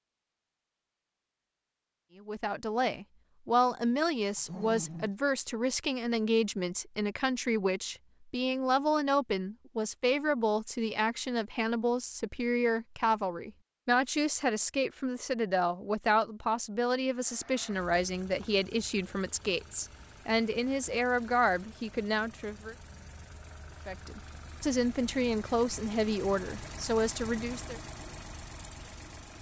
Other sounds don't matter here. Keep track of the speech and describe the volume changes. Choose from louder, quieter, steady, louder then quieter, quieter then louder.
steady.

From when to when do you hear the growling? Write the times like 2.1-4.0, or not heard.
4.3-5.2.